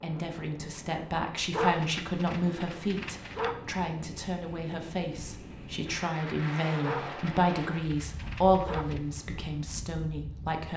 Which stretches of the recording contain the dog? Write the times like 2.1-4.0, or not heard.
1.5-3.5, 6.8-9.0.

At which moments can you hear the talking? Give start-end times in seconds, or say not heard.
0.0-10.7.